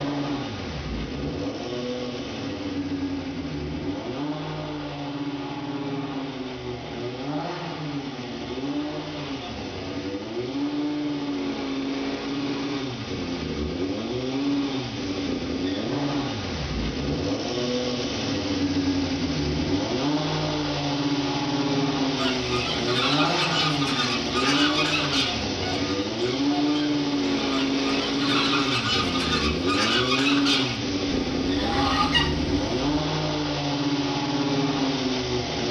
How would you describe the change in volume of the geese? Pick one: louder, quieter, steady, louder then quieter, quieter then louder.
quieter then louder.